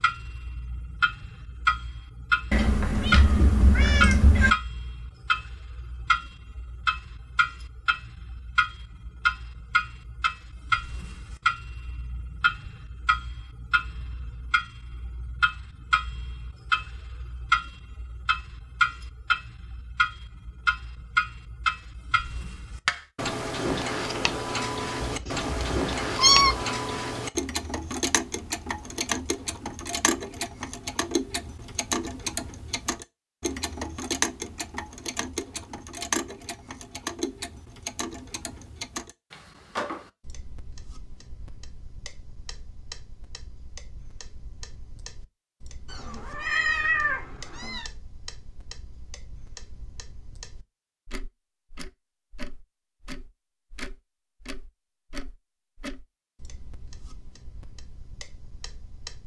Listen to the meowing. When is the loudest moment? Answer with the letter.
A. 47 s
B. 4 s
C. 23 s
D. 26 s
D.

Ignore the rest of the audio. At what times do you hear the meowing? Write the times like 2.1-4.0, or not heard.
2.5-4.5, 25.0-26.6, 45.9-47.9.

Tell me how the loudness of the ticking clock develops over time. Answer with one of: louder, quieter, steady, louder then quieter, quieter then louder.
quieter.